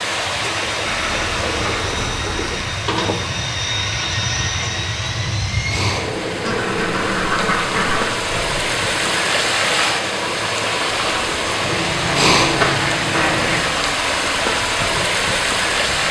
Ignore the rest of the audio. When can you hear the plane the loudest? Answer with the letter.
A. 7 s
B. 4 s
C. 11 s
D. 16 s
B.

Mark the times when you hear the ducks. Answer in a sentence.
The ducks can be heard from 0.8 to 2.7 s, from 6.4 to 8.1 s and from 11.6 to 13.6 s.